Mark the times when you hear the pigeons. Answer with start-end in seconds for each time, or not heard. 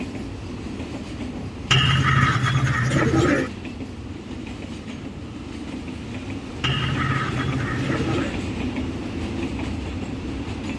1.7-3.5, 6.6-8.3.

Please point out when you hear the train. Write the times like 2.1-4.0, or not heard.
0.0-10.7.